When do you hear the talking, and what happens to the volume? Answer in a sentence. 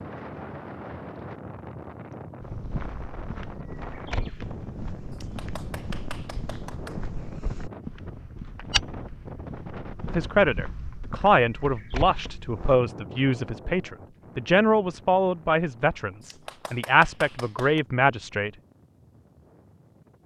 The talking can be heard from 10.1 to 18.5 s, at a steady volume.